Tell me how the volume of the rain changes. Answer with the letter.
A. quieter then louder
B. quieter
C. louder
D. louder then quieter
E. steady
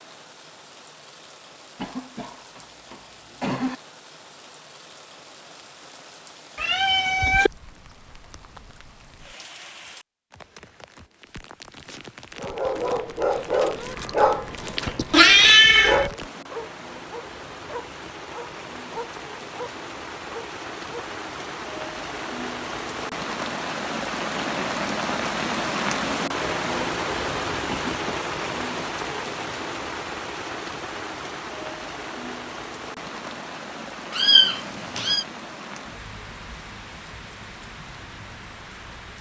D.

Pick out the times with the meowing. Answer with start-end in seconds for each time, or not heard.
6.5-7.5, 15.1-16.1, 34.1-35.2.